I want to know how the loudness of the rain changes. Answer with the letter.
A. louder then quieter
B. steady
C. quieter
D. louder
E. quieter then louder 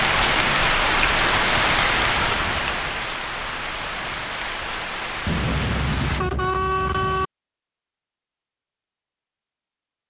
C.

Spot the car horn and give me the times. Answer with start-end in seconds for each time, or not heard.
2.2-2.8, 5.2-7.3.